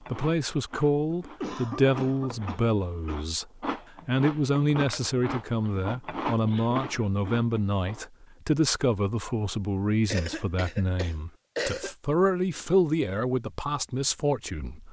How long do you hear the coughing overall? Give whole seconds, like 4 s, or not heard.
5 s.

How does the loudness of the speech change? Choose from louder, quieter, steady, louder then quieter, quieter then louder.
steady.